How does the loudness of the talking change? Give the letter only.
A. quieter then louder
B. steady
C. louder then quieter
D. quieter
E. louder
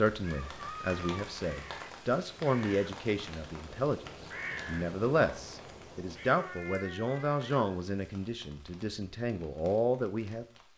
B.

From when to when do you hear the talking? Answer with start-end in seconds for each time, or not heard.
0.0-4.0, 4.7-10.4.